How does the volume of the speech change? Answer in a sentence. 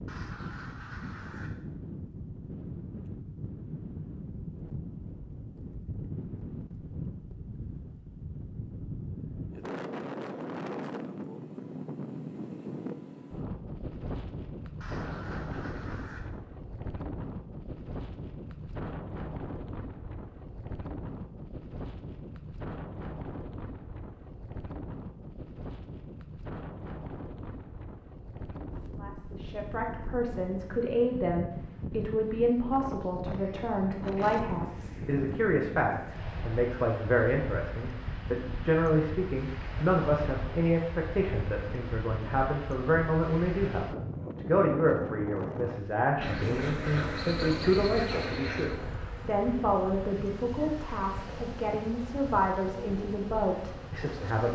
The volume of the speech stays about the same.